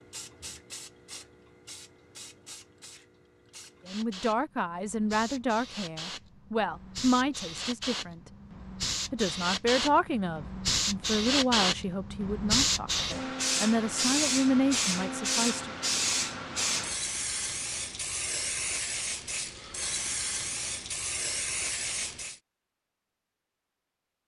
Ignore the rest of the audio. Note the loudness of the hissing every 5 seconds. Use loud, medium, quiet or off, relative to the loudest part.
quiet, medium, loud, loud, medium.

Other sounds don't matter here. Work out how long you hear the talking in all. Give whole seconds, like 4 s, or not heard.
11 s.